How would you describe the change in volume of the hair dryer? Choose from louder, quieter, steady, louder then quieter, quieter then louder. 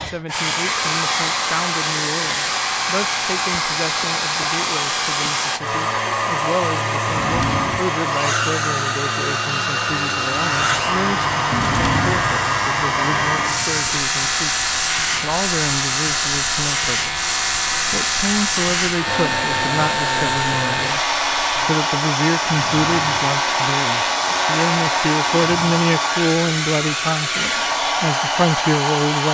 steady.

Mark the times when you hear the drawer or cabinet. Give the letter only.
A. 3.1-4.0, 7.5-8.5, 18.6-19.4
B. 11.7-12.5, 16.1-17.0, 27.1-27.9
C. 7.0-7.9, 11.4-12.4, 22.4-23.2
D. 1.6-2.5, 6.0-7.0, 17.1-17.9
C.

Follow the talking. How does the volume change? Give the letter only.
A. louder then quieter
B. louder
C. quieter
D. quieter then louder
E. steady
B.